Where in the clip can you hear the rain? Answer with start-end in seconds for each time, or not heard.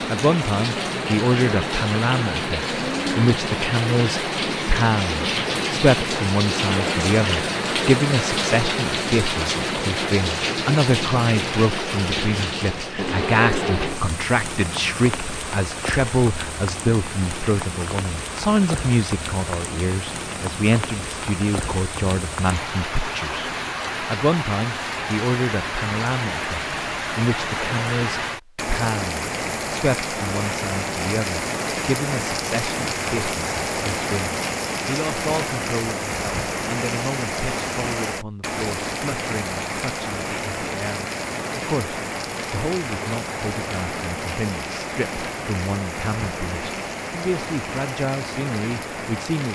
0.0-49.5.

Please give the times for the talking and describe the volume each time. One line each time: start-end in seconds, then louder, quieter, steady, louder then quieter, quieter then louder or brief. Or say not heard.
0.1-49.5 quieter.